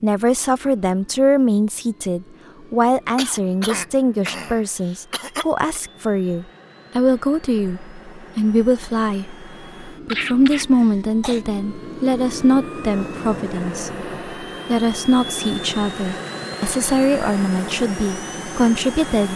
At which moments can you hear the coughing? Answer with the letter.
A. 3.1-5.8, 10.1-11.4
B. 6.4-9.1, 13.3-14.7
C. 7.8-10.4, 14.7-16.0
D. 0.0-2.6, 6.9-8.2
A.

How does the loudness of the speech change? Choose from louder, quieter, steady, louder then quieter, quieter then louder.
steady.